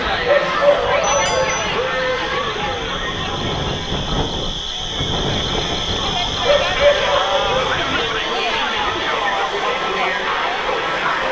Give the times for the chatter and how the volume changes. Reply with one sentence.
The chatter can be heard from 0.0 to 11.2 s, getting quieter then louder.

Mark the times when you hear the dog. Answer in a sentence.
The dog can be heard from 0.2 to 1.6 s and from 6.4 to 7.5 s.